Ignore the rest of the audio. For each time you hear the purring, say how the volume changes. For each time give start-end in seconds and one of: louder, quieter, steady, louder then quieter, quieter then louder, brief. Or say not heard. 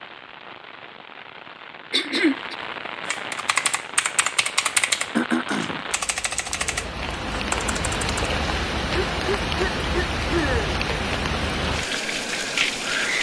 not heard.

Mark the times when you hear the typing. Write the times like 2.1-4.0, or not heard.
3.0-8.2.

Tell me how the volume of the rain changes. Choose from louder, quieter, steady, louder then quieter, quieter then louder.
louder.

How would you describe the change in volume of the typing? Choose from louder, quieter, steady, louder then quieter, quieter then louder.
quieter.